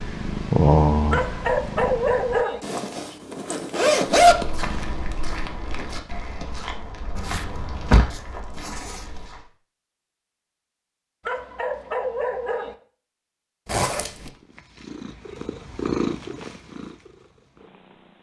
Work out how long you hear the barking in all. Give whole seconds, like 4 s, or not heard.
3 s.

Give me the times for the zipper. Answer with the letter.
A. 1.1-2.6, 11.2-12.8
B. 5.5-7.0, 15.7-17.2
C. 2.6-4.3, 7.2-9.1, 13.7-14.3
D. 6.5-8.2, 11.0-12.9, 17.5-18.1
C.